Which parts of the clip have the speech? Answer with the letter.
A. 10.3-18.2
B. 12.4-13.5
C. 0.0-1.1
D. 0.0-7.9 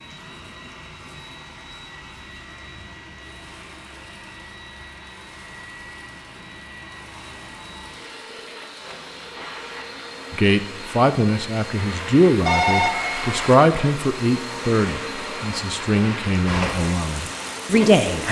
A.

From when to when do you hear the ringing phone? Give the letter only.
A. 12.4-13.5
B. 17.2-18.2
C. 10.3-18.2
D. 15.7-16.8
A.